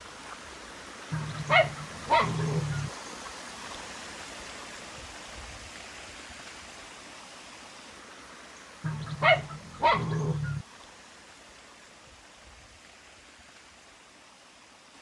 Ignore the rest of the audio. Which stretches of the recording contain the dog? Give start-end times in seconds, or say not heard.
1.1-2.9, 8.8-10.7.